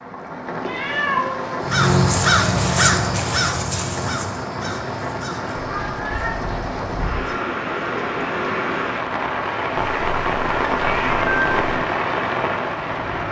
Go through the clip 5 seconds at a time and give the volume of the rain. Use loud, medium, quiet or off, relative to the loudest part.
medium, loud, loud.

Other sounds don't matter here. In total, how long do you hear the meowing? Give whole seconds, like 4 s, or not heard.
5 s.